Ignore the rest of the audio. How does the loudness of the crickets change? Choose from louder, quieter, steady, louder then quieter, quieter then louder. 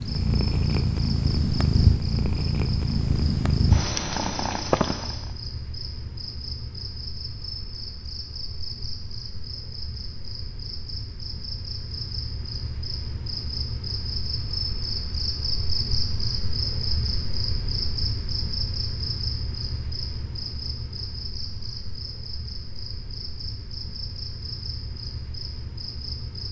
louder then quieter.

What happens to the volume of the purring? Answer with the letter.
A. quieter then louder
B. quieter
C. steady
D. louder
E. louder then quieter
C.